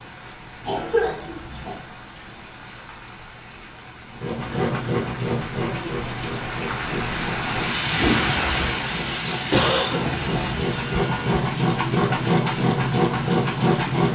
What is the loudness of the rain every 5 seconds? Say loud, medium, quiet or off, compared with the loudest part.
quiet, loud, medium.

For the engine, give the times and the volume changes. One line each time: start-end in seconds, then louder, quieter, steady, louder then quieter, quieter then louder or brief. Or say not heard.
4.2-14.1 quieter then louder.